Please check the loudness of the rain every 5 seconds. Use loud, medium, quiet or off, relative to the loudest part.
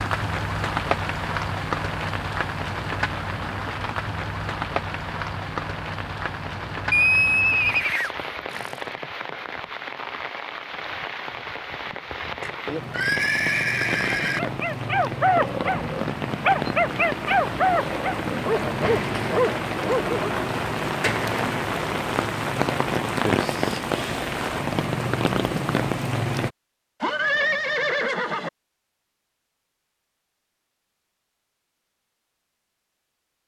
loud, medium, medium, loud, loud, loud, off.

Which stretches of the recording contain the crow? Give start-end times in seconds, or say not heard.
not heard.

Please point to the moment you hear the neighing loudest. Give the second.
7 s.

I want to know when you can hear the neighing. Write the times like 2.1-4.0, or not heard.
6.9-8.8, 12.4-14.4, 27.0-28.5.